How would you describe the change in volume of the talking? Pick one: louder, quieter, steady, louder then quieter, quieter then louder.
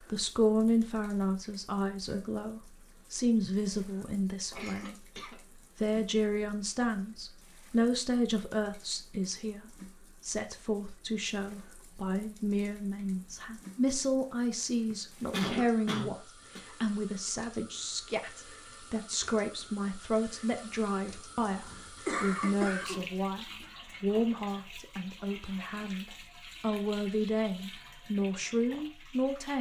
steady.